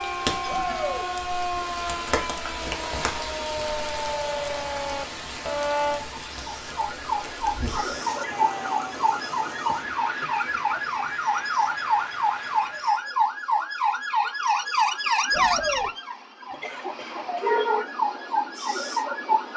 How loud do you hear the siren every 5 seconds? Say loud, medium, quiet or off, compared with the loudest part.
medium, loud, loud, loud.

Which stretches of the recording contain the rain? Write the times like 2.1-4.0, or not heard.
0.0-13.1.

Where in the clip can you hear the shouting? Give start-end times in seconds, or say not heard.
0.5-1.1, 8.0-8.8, 15.3-15.9.